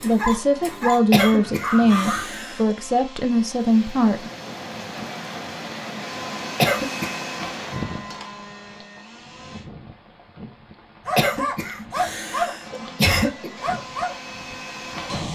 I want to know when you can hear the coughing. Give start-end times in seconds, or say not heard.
1.1-2.8, 6.6-7.2, 11.2-13.5.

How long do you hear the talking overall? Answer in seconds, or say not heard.
4 s.